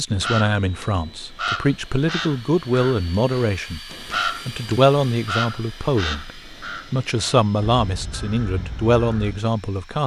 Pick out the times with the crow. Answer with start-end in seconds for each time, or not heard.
0.2-9.4.